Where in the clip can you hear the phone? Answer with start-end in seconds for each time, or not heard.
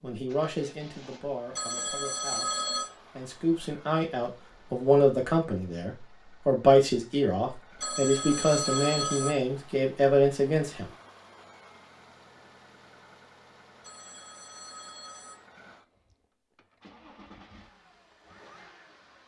1.6-2.9, 7.8-9.3, 13.8-15.3.